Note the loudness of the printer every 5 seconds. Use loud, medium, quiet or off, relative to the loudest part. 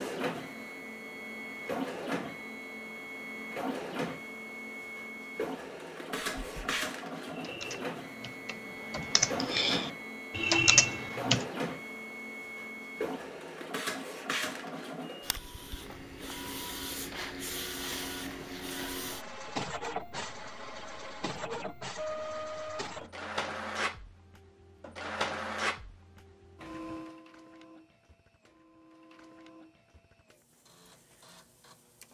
loud, loud, loud, loud, loud, loud, quiet.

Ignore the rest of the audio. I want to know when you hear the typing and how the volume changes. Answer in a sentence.
The typing can be heard from 6.3 to 11.4 s, getting louder.